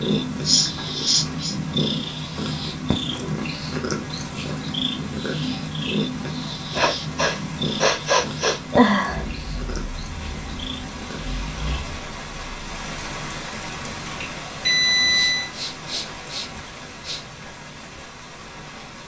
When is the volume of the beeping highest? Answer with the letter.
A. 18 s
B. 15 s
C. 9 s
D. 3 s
B.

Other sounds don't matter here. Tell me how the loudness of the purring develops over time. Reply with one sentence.
The loudness of the purring goes down.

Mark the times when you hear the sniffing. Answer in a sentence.
The sniffing can be heard from 0.5 to 1.6 s, from 6.7 to 9.2 s and from 15.0 to 17.2 s.